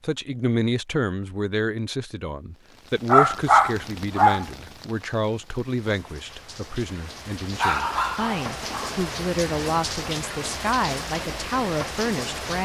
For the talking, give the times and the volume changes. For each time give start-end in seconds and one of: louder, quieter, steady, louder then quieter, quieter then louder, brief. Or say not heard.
0.0-12.6 steady.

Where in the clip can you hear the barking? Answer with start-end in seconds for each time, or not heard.
3.0-4.5, 7.5-9.1.